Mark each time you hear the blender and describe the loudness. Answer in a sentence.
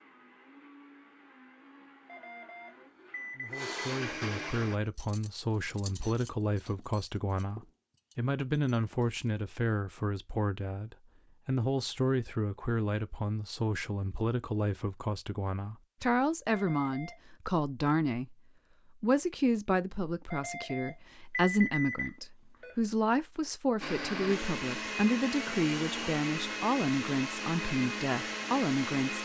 You can hear the blender from 0.0 to 4.8 s, getting louder; and from 23.8 to 29.2 s, at a steady volume.